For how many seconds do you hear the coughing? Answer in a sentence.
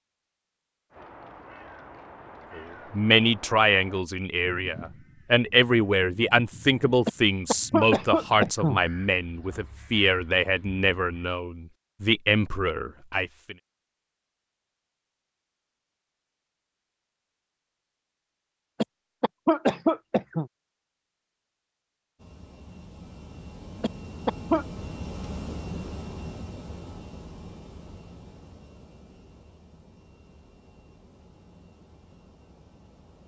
The coughing can be heard for 4 seconds in total.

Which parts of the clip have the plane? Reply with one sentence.
The plane can be heard from 22.1 to 33.2 s.